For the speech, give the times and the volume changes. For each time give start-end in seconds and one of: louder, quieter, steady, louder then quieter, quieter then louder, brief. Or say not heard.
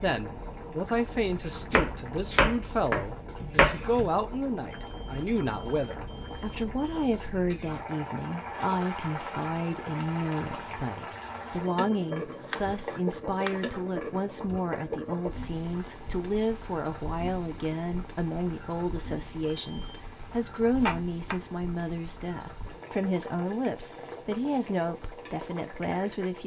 0.0-26.4 steady.